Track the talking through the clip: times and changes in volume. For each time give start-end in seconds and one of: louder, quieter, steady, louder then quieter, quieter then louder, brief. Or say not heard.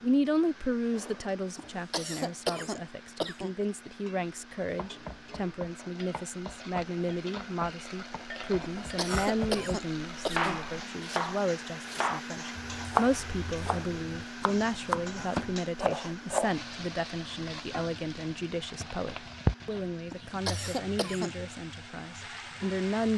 0.0-23.1 steady.